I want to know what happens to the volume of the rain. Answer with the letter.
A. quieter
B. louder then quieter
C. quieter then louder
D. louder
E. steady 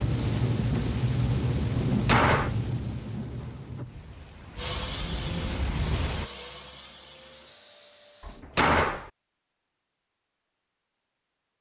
C.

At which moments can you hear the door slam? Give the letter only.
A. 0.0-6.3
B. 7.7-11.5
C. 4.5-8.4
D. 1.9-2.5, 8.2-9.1
D.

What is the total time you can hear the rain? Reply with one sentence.
You can hear the rain for 6 seconds altogether.